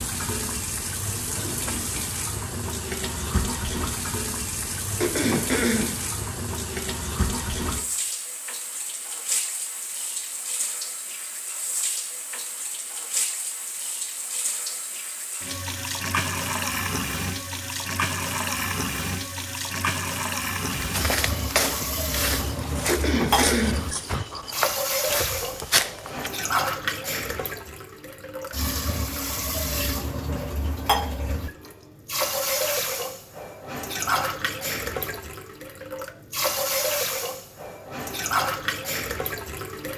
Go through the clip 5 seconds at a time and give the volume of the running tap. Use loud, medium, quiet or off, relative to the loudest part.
loud, loud, medium, loud, loud, loud, loud, loud.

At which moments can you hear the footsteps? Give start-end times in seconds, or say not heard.
20.7-26.3.